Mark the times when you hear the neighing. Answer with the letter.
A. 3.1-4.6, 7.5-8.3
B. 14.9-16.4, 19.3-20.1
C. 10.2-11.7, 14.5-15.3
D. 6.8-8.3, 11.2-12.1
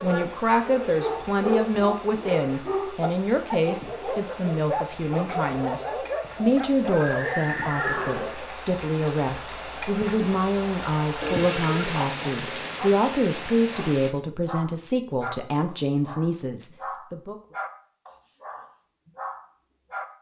D.